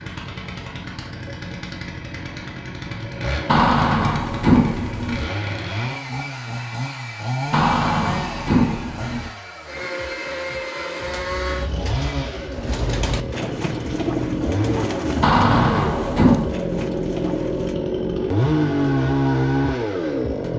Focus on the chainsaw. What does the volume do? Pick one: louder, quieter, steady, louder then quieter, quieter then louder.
louder.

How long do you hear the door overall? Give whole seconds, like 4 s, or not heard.
5 s.